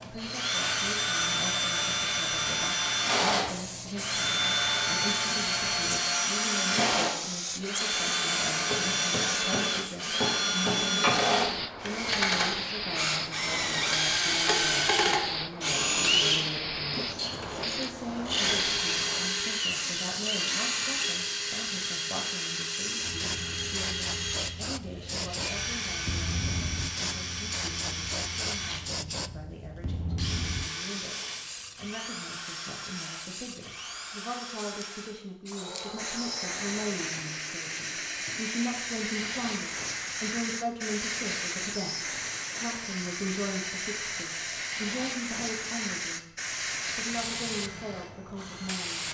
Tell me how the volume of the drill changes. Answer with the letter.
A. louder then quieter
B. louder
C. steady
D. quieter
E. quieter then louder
D.